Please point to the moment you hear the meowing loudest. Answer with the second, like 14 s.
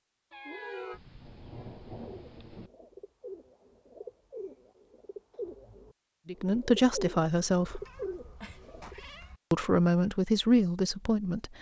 1 s.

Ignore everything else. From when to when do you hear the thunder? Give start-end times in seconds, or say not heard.
0.9-2.7.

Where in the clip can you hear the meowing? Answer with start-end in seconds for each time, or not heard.
0.3-1.0, 7.6-9.4.